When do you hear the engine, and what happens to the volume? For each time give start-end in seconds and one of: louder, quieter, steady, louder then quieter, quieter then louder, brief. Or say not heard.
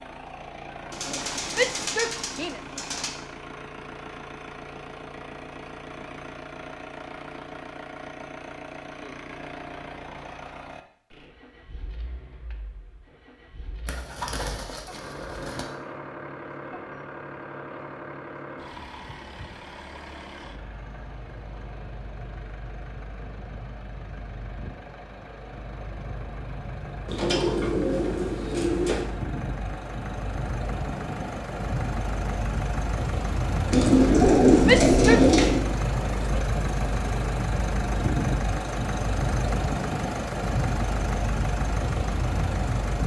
0.0-43.0 louder.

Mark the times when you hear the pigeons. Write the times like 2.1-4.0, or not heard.
0.9-3.1, 13.8-15.7, 27.1-29.1, 33.7-35.6.